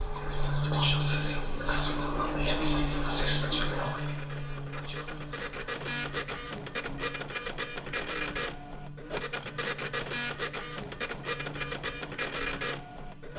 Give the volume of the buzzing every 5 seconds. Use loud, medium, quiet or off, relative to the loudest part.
loud, quiet, quiet.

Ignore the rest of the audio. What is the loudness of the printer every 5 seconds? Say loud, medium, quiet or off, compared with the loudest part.
medium, loud, loud.